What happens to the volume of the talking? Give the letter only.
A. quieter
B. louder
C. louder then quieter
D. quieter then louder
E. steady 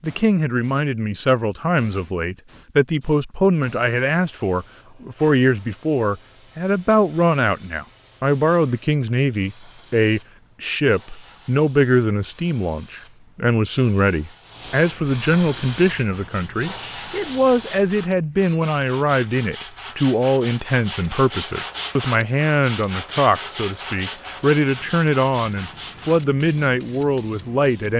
E.